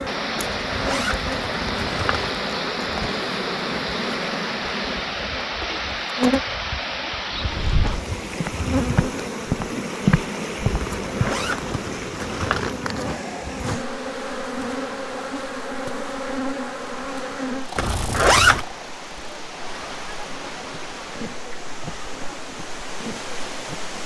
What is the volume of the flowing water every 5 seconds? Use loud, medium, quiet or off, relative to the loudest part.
loud, loud, medium, medium, medium.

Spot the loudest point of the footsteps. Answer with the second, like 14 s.
10 s.